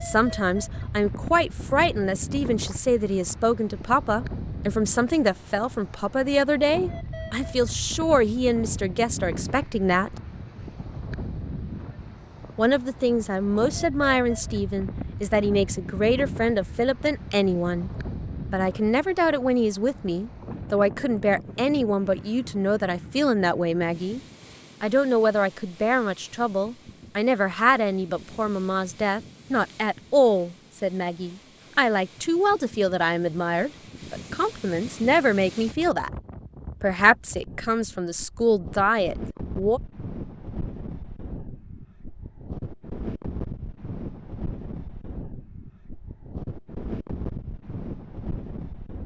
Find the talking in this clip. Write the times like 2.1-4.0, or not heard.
0.0-10.1, 12.6-17.9, 18.5-24.2, 24.8-36.1, 36.8-39.8.